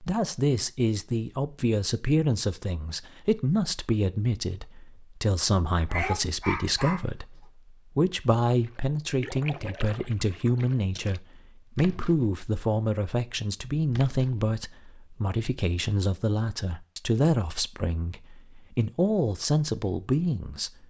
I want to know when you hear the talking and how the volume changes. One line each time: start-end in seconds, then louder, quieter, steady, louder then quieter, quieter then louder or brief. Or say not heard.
0.0-20.7 steady.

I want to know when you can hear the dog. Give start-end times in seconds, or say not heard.
5.8-7.0.